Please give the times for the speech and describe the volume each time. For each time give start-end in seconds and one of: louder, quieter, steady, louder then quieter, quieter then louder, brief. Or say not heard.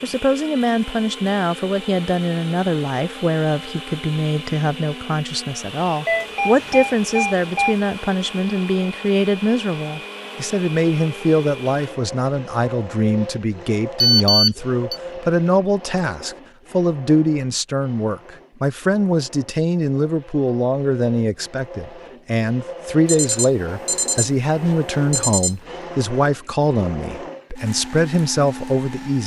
0.0-29.2 steady.